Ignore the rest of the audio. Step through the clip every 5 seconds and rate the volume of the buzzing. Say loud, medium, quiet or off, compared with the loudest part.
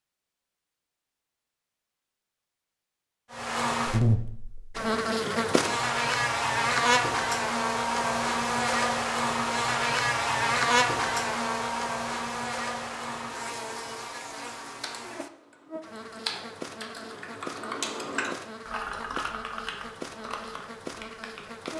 loud, loud, loud, quiet, quiet.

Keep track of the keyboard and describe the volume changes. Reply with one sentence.
The loudness of the keyboard goes up, then down.